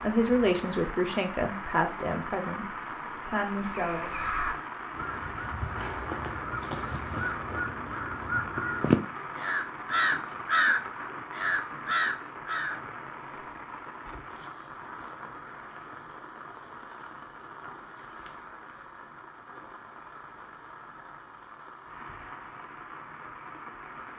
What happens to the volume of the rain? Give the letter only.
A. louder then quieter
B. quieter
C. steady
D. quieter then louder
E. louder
B.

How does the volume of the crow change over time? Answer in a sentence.
The loudness of the crow goes up.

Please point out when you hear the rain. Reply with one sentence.
You can hear the rain from 0.0 to 24.1 s.